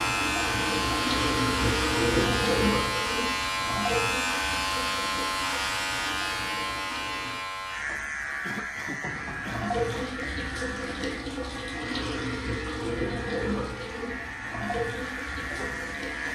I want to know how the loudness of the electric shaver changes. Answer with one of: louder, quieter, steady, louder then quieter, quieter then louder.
quieter.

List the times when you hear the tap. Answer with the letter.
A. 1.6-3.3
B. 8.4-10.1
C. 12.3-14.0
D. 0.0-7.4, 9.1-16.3
D.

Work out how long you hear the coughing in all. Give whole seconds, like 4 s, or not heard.
2 s.